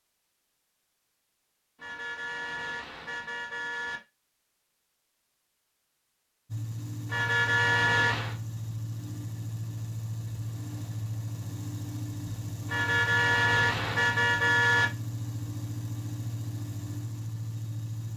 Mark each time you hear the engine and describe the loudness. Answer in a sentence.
You can hear the engine from 6.5 to 18.1 s, at a steady volume.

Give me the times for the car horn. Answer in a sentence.
The car horn can be heard from 1.8 to 4.0 s, from 7.0 to 8.3 s and from 12.7 to 14.8 s.